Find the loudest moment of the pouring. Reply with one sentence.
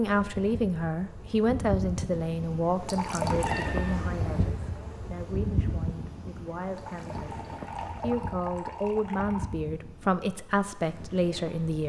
The loudest moment of the pouring is at 3 seconds.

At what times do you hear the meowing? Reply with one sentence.
You can hear the meowing from 3.2 to 4.0 s.